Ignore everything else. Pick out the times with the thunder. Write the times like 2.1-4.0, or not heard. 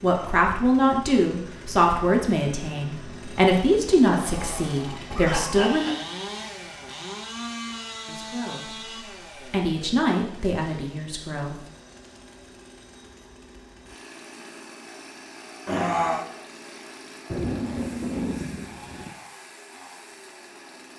17.3-19.1.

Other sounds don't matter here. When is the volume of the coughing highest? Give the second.
16 s.